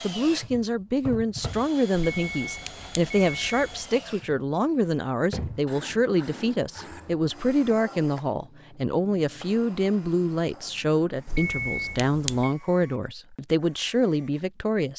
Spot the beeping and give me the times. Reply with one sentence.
The beeping can be heard from 2.1 to 4.0 s and from 11.2 to 12.6 s.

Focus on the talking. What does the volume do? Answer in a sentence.
The loudness of the talking stays about the same.